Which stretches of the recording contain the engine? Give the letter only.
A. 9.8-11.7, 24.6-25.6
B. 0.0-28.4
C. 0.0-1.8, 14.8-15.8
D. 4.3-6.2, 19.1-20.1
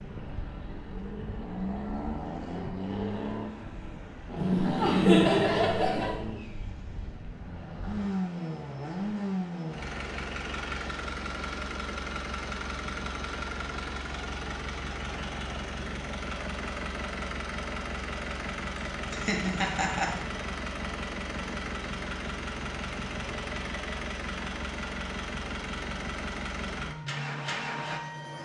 B.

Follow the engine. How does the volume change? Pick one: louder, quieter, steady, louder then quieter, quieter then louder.
steady.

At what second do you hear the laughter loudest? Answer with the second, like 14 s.
5 s.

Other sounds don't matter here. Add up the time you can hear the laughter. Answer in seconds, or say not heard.
3 s.